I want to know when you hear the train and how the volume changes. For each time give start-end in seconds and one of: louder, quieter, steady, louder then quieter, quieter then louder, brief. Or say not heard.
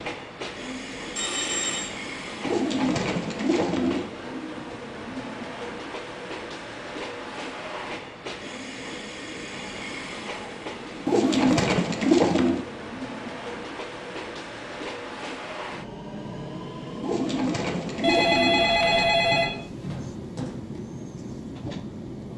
0.0-22.3 steady.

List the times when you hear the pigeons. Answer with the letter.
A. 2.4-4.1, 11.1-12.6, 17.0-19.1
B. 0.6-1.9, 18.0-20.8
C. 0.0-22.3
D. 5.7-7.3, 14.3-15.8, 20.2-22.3
A.